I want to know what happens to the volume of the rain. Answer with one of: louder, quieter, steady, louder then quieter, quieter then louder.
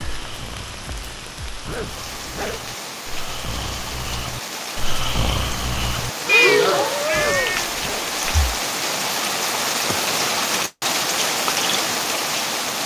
louder.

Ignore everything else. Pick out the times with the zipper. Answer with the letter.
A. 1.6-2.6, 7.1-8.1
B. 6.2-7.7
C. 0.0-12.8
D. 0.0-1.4
A.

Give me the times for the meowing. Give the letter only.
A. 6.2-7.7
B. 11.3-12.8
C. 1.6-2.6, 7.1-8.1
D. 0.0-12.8
A.